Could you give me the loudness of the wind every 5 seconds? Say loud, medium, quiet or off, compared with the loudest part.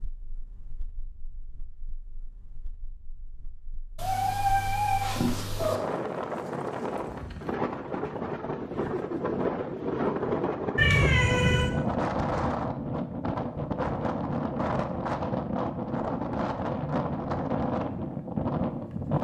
quiet, loud, loud, loud.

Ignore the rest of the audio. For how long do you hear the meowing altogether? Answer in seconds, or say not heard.
3 s.